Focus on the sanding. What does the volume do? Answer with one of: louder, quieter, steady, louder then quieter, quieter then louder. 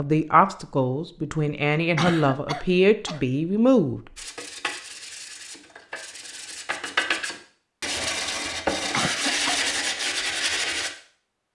louder.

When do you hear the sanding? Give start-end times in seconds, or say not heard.
4.2-10.9.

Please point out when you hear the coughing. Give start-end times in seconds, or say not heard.
1.9-3.2, 8.9-9.6.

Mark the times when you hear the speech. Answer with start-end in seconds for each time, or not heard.
0.0-4.0.